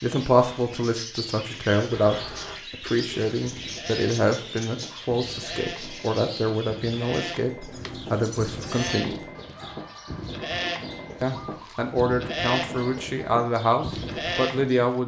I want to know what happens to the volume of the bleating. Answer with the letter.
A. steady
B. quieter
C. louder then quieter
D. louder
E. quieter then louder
D.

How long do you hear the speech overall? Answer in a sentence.
The speech can be heard for 13 seconds in total.